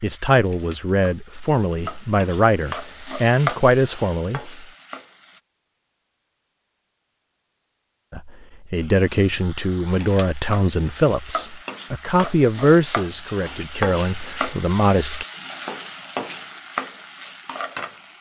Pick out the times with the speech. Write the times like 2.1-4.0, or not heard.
0.0-4.7, 8.1-15.2.